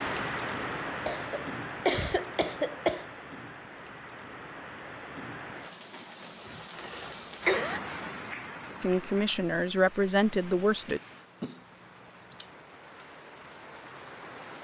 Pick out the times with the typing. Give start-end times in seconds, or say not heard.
not heard.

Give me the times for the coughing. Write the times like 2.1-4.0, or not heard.
1.1-3.0, 6.8-7.8, 10.8-12.5.